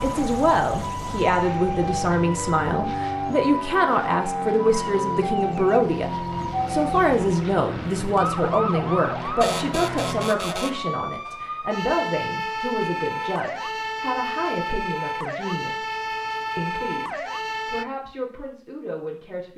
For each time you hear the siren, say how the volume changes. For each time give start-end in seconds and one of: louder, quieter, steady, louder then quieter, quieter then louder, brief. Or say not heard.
0.0-17.9 steady.